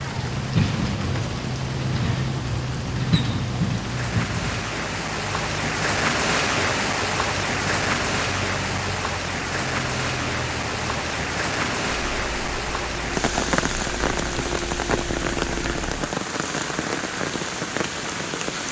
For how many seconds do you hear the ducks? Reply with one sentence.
The ducks can't be heard in this clip.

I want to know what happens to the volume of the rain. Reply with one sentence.
The loudness of the rain goes up.